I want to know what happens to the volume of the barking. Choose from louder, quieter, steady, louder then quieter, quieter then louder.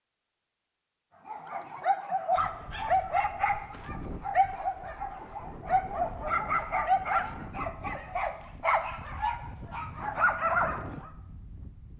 steady.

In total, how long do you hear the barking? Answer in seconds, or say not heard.
10 s.